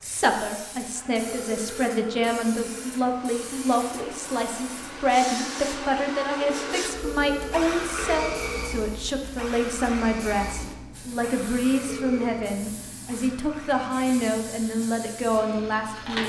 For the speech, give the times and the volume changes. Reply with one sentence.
You can hear the speech from 0.0 to 16.2 s, at a steady volume.